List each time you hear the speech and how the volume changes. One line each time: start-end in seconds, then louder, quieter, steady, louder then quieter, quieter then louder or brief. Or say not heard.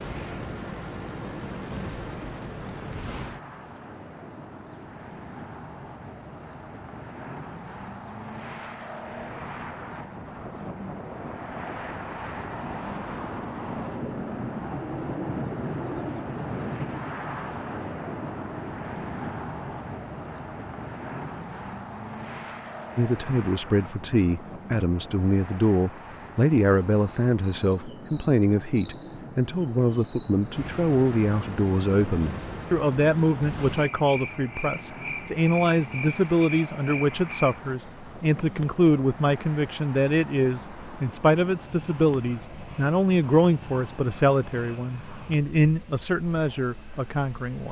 22.9-47.6 steady.